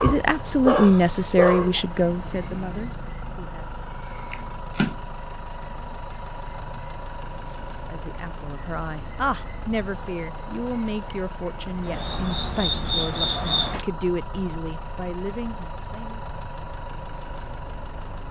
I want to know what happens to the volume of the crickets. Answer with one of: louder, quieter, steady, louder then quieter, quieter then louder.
steady.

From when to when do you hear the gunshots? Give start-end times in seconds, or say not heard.
not heard.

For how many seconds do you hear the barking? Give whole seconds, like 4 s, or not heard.
2 s.